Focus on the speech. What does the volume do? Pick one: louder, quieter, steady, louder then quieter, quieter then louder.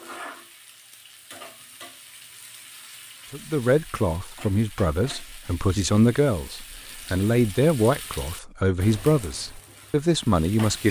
steady.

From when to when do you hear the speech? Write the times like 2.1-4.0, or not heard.
3.3-10.8.